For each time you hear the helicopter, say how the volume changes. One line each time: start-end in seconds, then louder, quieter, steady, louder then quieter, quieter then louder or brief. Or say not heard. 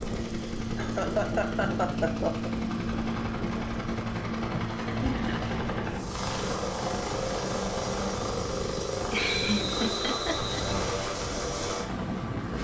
0.0-12.5 steady.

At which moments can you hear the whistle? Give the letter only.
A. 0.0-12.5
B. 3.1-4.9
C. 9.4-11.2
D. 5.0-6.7
C.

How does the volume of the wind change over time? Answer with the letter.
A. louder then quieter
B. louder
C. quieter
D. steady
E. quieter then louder
D.